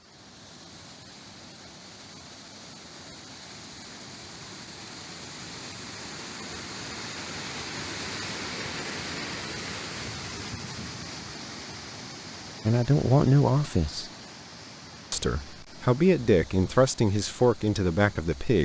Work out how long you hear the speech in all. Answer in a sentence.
The speech can be heard for 5 seconds in total.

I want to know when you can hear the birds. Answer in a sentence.
The birds can't be heard in this clip.